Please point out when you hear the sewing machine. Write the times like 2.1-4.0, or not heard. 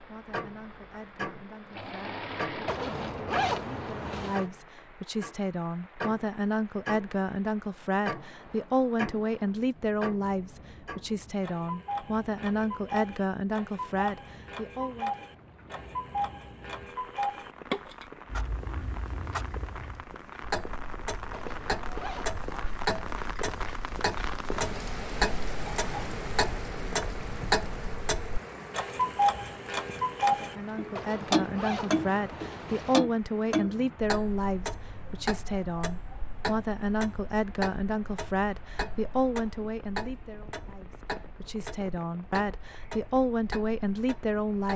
0.0-2.9.